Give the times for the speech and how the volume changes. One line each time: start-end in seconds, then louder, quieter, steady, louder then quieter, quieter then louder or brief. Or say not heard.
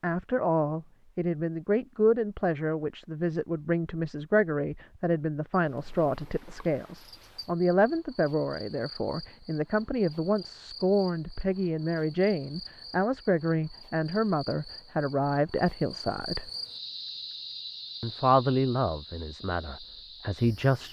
0.0-16.5 steady
18.0-20.8 brief.